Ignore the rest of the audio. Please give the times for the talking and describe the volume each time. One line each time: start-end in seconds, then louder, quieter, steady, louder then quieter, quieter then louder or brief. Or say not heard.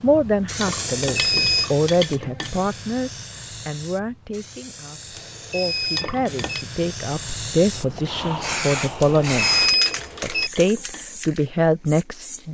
0.0-12.5 quieter then louder.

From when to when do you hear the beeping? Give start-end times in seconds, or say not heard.
0.8-1.7, 5.2-6.7, 9.0-10.5.